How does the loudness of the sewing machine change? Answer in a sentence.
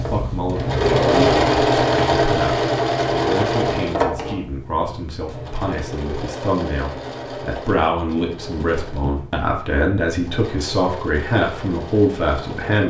The loudness of the sewing machine goes down.